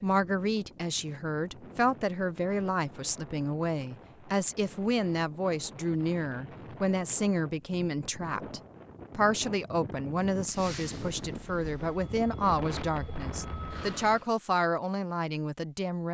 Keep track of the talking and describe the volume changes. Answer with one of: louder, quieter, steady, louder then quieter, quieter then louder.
steady.